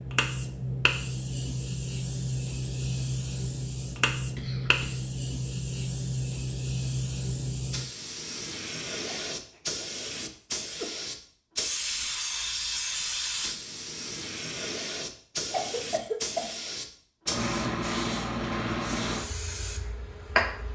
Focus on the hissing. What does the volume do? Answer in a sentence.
The volume of the hissing stays about the same.